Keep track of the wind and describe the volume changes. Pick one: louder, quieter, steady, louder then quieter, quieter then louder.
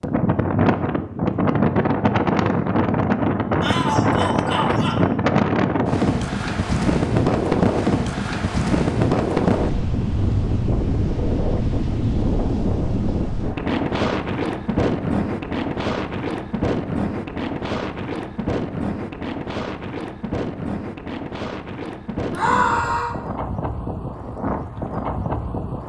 quieter.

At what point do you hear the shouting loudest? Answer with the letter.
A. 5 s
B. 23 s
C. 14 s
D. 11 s
B.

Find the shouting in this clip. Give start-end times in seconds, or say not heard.
3.6-5.0, 22.3-23.1.